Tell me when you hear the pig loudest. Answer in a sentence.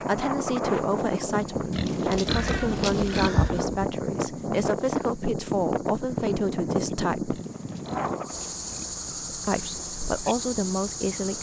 The loudest moment of the pig is at 3 seconds.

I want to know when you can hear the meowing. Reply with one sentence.
The meowing can be heard from 2.2 to 3.9 s.